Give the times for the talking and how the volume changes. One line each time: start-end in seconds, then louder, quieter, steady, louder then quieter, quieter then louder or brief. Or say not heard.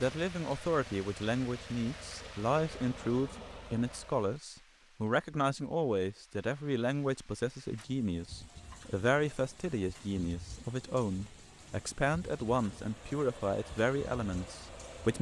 0.0-15.1 steady.